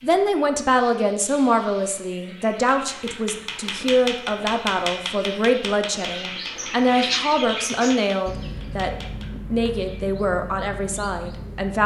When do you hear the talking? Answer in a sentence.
The talking can be heard from 0.0 to 11.8 s.